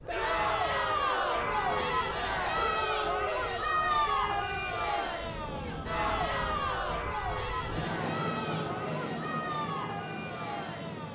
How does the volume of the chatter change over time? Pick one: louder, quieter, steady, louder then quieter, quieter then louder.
quieter.